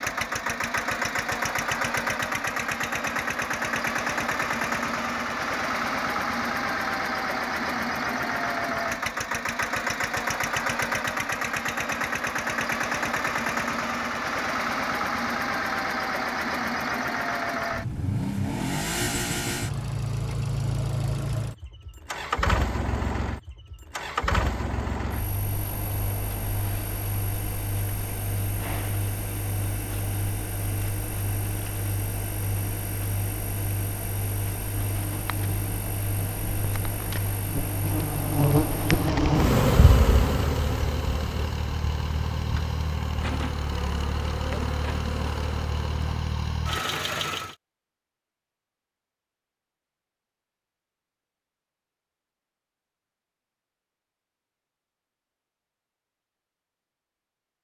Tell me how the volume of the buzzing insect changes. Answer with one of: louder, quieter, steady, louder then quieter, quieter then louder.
louder then quieter.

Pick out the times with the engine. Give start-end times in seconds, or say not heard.
0.0-47.5.